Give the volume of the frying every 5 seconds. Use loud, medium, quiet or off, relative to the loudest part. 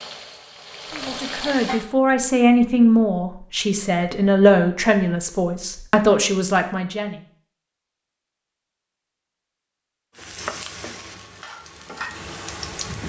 loud, off, loud.